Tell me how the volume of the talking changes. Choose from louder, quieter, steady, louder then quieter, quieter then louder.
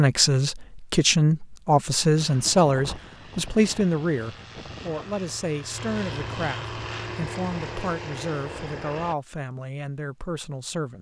quieter.